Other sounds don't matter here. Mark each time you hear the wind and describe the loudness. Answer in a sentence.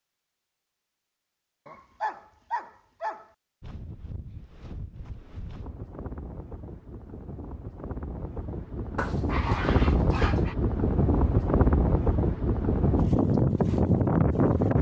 You can hear the wind from 3.6 to 14.7 s, getting louder.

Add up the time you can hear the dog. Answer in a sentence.
The dog can be heard for 3 seconds in total.